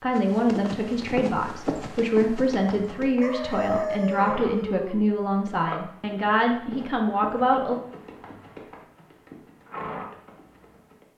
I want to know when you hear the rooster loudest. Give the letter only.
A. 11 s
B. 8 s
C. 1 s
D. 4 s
D.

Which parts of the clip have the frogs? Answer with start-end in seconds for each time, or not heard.
not heard.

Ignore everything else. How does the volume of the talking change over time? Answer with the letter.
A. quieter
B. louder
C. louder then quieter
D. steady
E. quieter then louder
D.